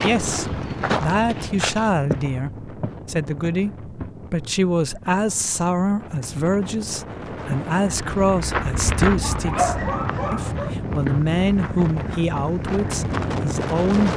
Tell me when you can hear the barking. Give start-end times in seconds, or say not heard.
9.2-10.8.